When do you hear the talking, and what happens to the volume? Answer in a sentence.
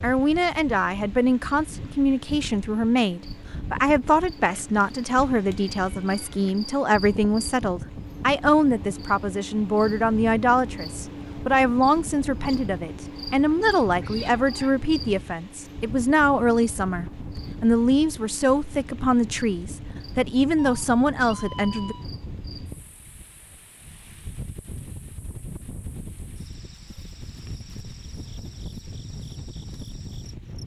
You can hear the talking from 0.0 to 21.9 s, at a steady volume.